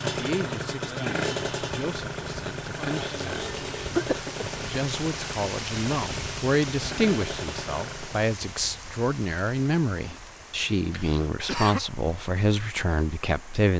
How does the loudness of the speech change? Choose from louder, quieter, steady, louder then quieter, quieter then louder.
louder.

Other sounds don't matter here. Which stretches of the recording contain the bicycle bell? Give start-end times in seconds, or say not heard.
not heard.